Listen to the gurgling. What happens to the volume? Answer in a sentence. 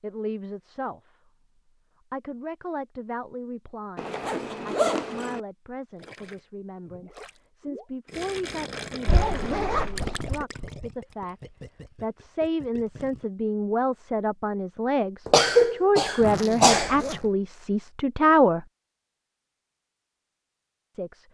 The volume of the gurgling goes up, then down.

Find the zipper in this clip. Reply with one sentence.
The zipper can be heard from 4.0 to 5.4 s, from 9.1 to 10.4 s and from 16.2 to 17.3 s.